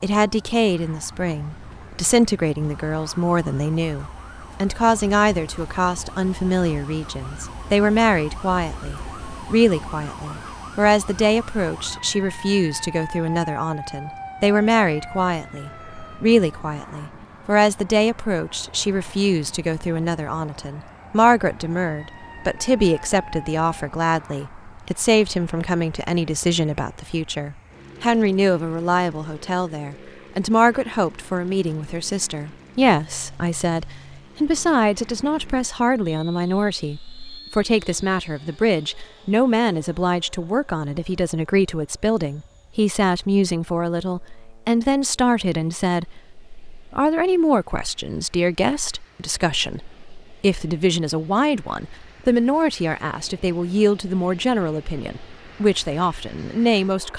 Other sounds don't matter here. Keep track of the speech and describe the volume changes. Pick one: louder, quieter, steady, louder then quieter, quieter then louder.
steady.